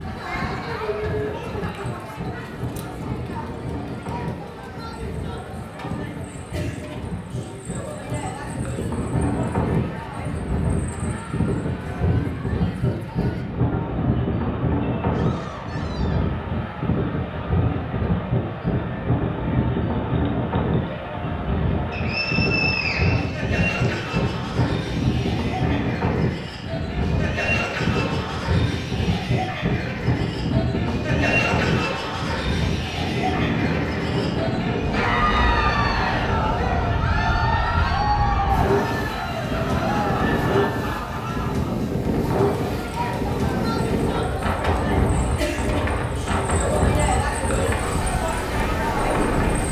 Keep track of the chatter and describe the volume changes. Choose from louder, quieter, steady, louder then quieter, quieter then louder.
louder.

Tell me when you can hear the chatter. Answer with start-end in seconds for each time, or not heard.
0.0-49.6.